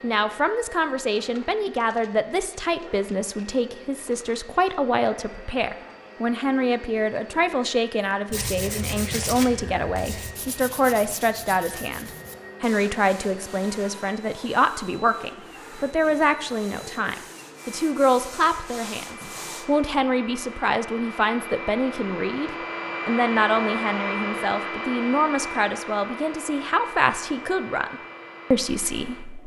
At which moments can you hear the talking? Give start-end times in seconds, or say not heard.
0.0-29.4.